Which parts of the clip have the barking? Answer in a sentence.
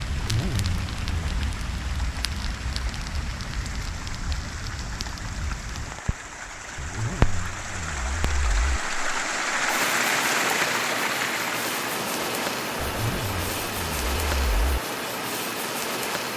The barking can't be heard in this clip.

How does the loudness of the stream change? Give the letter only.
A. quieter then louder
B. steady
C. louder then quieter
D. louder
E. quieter
C.